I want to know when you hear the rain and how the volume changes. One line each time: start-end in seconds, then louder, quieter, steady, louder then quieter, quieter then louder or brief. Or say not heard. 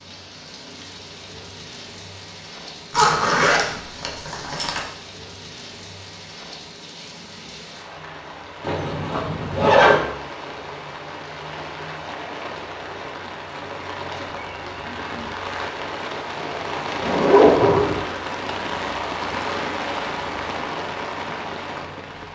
0.0-22.2 louder.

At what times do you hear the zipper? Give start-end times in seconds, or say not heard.
2.9-4.8, 8.6-10.0, 17.0-18.0.